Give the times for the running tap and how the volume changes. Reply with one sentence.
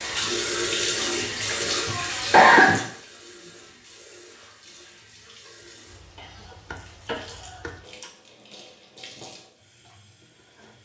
You can hear the running tap from 0.0 to 10.7 s, getting quieter.